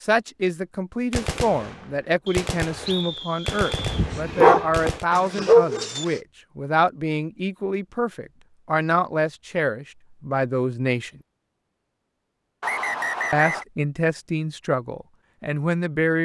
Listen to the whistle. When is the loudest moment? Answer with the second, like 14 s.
13 s.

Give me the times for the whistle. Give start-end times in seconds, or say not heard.
2.2-4.0, 12.6-13.7.